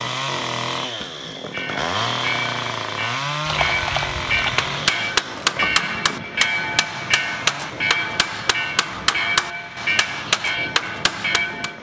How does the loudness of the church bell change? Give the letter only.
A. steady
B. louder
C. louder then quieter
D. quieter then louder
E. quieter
A.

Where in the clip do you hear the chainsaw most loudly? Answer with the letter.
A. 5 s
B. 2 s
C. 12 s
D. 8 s
B.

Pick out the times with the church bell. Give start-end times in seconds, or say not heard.
1.4-11.7.